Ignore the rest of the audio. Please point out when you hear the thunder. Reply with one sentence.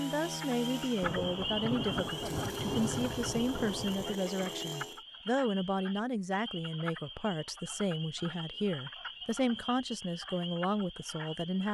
You can hear the thunder from 1.0 to 4.2 s.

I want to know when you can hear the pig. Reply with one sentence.
The pig can't be heard in this clip.